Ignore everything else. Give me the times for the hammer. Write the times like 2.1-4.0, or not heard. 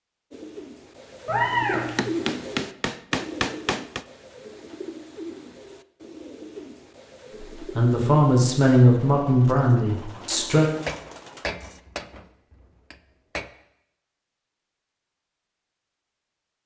1.7-4.0, 10.8-13.5.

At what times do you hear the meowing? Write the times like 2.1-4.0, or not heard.
1.2-2.1.